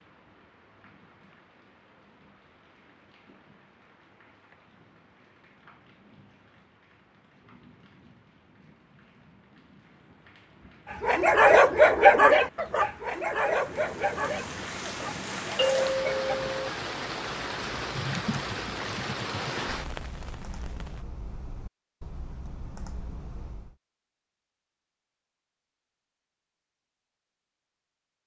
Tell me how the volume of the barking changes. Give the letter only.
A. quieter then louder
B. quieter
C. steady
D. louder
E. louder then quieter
B.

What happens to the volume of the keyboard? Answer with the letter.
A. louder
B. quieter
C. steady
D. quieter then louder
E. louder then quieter
B.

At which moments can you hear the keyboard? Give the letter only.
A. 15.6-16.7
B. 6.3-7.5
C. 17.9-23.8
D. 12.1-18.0
C.